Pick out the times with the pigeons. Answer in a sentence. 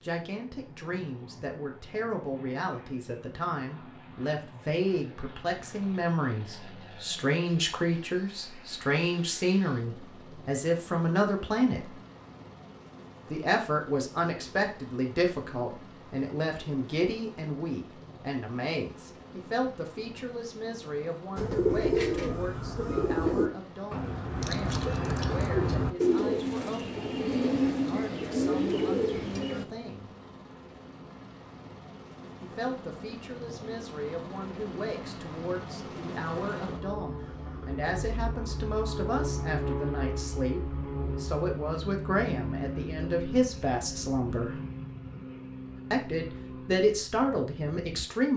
You can hear the pigeons from 21.4 to 29.6 s.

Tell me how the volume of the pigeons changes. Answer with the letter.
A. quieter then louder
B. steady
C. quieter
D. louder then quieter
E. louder
B.